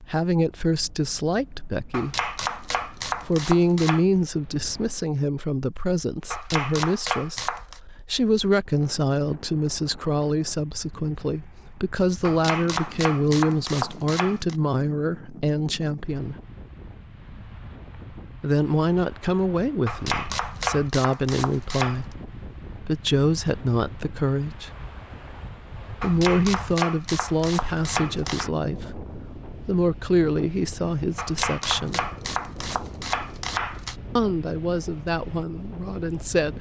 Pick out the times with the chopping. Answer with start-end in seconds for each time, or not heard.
1.9-4.0, 6.3-7.8, 12.2-14.6, 19.9-22.0, 26.0-28.5, 31.1-34.0.